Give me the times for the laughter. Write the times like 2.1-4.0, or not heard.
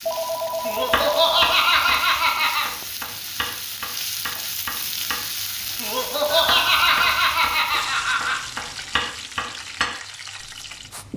0.7-2.7, 5.8-8.4.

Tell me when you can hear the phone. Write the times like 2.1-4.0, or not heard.
0.1-1.6, 6.2-7.3.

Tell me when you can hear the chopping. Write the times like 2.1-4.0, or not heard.
0.9-5.8, 6.5-9.9.